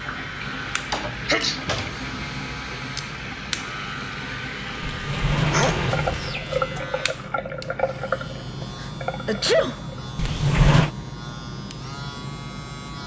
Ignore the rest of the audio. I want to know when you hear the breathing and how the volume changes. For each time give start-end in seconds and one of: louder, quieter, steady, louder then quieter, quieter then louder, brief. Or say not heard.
not heard.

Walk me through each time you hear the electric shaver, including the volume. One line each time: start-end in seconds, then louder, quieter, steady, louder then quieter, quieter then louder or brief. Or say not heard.
0.0-13.0 steady.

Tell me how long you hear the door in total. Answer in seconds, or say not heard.
4 s.